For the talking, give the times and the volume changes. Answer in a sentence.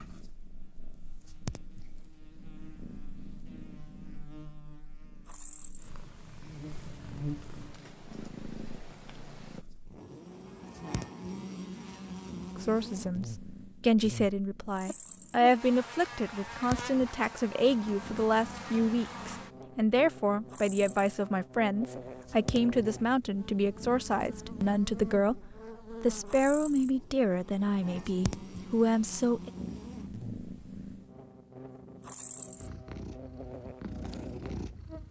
The talking can be heard from 12.6 to 29.5 s, at a steady volume.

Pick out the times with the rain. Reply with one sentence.
You can't hear the rain here.